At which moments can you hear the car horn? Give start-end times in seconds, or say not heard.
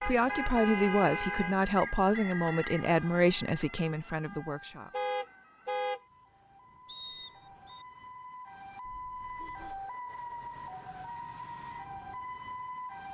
0.0-1.6, 4.9-6.0, 8.8-9.8.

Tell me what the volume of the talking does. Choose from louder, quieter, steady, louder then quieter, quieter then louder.
quieter.